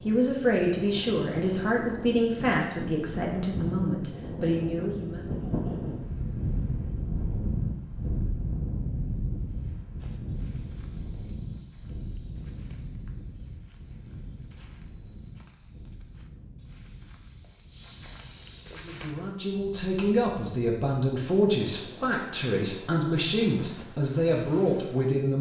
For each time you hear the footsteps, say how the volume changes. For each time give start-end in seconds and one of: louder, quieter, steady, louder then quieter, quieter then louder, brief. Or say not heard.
9.9-19.1 louder.